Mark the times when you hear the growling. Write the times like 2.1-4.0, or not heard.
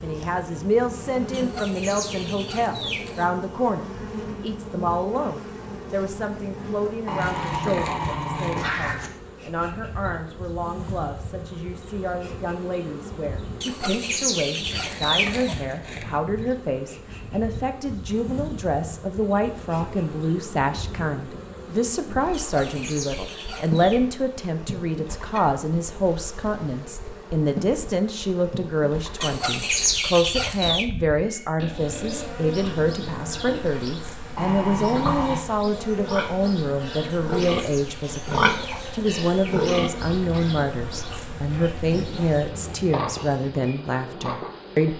7.0-9.1, 34.4-35.5.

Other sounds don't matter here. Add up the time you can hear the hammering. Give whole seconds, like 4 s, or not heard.
not heard.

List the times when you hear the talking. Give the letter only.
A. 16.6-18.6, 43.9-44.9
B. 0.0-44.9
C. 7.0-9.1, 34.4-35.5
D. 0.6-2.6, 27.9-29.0
B.